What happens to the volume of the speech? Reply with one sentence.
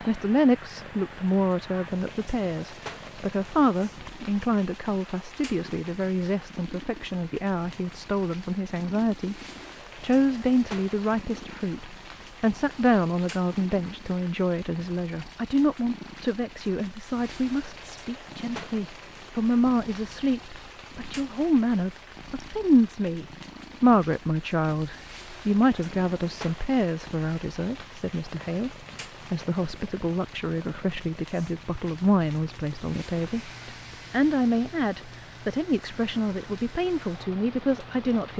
The volume of the speech stays about the same.